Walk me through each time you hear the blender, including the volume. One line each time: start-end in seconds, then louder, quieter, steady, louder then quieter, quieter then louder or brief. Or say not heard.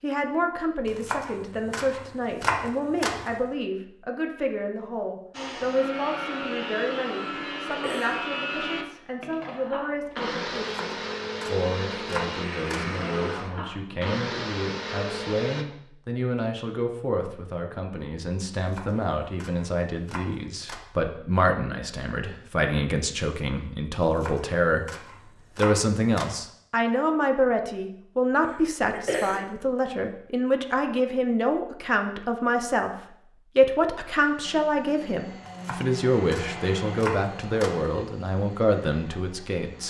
5.3-15.7 steady
34.2-39.8 louder then quieter.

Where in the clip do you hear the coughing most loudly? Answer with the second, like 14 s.
29 s.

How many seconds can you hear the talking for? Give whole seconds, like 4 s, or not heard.
40 s.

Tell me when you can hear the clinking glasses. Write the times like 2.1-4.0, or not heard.
not heard.